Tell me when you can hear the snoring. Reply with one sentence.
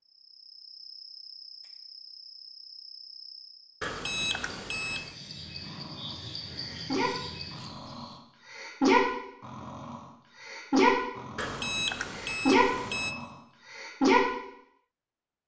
You can hear the snoring from 5.7 to 14.2 s.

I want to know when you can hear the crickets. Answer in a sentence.
You can hear the crickets from 0.1 to 8.2 s.